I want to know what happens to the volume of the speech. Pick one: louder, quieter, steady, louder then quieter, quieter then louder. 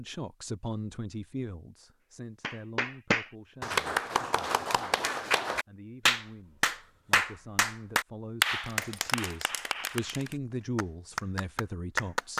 quieter then louder.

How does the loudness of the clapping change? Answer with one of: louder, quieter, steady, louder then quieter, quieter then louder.
quieter.